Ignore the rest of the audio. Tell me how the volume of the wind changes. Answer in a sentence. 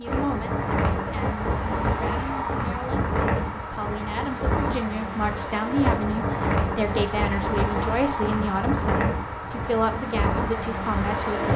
The volume of the wind stays about the same.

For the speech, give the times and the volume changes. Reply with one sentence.
You can hear the speech from 0.0 to 11.5 s, getting louder.